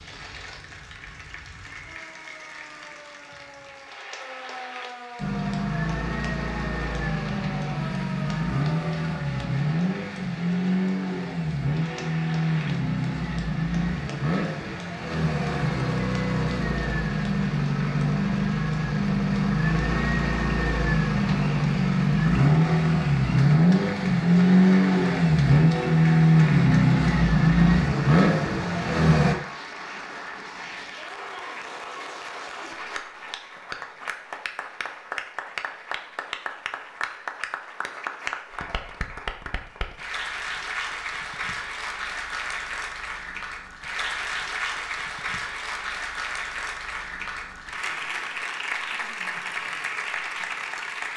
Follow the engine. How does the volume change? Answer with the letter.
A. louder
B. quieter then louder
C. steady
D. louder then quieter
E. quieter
A.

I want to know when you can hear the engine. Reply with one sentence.
You can hear the engine from 5.2 to 29.4 s.